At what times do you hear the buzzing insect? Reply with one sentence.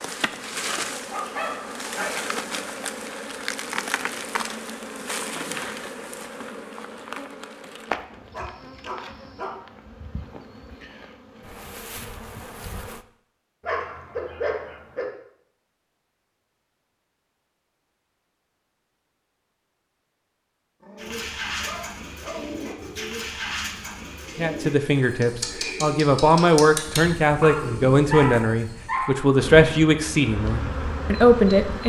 The buzzing insect can be heard from 0.0 to 13.1 s and from 29.4 to 31.8 s.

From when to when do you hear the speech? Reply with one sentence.
You can hear the speech from 24.4 to 31.8 s.